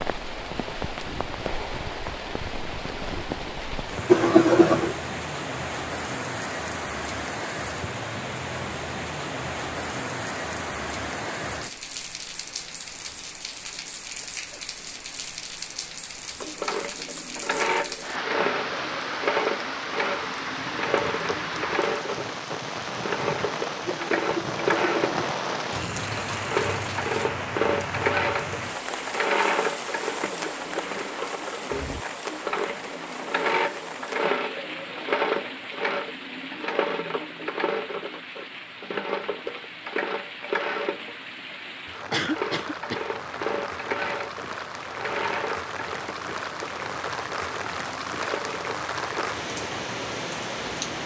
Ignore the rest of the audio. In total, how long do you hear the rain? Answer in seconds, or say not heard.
51 s.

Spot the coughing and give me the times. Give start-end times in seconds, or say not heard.
4.0-5.0, 23.9-25.1, 42.1-43.0.